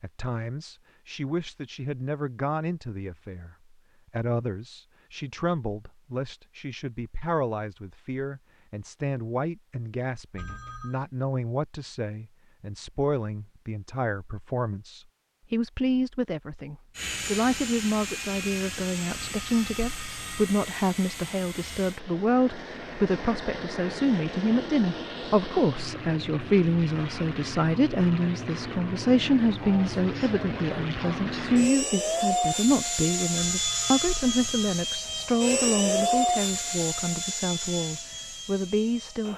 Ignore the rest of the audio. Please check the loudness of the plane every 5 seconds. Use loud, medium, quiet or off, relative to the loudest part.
off, off, off, medium, medium, medium, loud, loud.